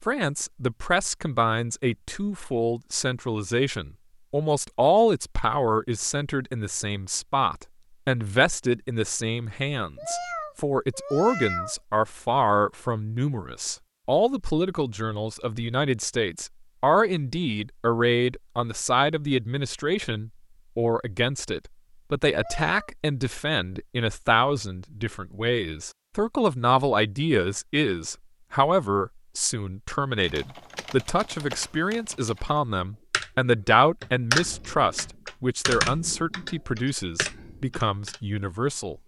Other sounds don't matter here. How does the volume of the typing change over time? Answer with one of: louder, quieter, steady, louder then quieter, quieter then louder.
louder then quieter.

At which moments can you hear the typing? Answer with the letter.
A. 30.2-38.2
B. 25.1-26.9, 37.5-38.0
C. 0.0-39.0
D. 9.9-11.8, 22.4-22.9
A.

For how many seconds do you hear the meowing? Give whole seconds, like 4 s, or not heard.
2 s.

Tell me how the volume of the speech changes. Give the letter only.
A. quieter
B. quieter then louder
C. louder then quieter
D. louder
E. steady
E.